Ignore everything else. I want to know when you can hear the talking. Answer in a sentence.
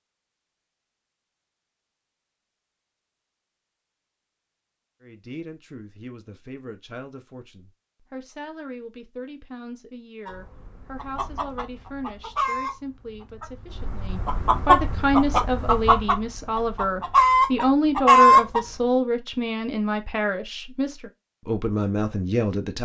You can hear the talking from 5.0 to 22.8 s.